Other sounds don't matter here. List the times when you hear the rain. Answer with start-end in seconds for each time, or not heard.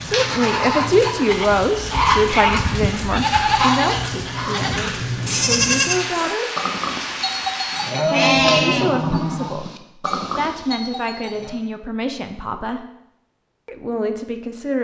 0.0-7.9.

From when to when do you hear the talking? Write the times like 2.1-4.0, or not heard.
0.0-6.5, 8.1-12.8, 13.7-14.7.